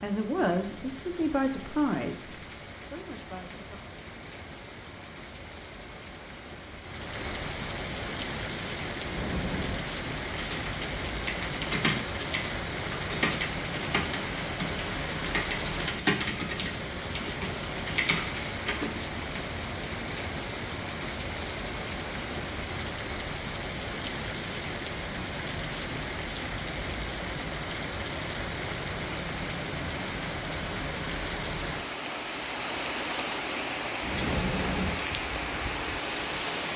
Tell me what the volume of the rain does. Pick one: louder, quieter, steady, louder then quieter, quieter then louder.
louder.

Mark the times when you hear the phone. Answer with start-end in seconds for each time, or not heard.
9.0-9.8, 34.0-35.0.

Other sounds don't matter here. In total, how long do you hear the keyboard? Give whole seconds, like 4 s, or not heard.
9 s.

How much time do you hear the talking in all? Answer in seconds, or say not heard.
4 s.